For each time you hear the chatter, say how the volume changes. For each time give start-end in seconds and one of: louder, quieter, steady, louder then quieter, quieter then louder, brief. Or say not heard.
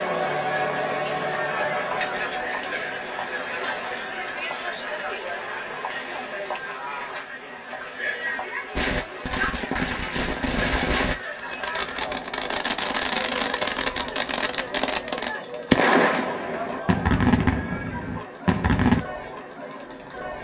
0.0-20.3 quieter.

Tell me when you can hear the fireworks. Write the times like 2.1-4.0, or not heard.
8.8-19.1.